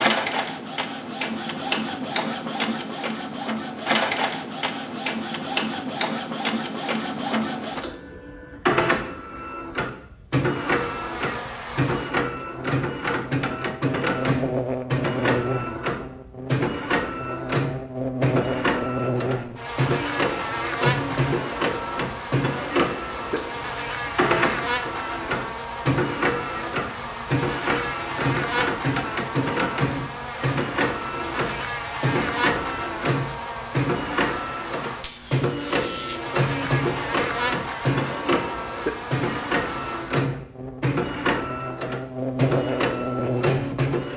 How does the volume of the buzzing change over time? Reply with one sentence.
The loudness of the buzzing stays about the same.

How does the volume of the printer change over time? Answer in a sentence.
The loudness of the printer stays about the same.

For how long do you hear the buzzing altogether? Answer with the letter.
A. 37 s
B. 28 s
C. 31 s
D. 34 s
D.